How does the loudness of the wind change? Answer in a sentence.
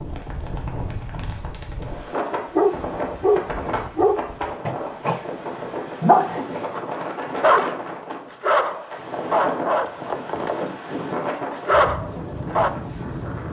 The loudness of the wind stays about the same.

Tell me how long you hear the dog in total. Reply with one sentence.
You can hear the dog for 10 seconds altogether.